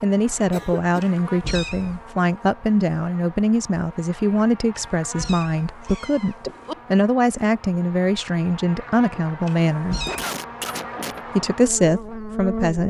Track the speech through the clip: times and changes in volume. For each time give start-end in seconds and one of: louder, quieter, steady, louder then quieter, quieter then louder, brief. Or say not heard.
0.0-10.0 steady
11.3-12.8 brief.